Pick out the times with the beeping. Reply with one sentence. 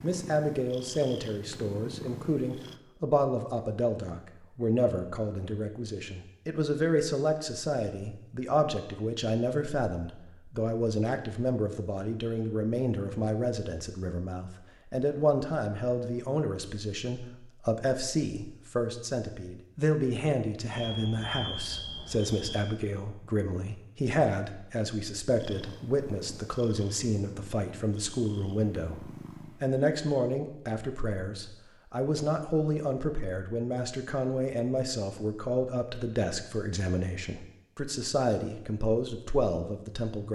The beeping can be heard from 20.7 to 22.6 s.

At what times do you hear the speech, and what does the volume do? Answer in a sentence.
The speech can be heard from 0.0 to 40.3 s, at a steady volume.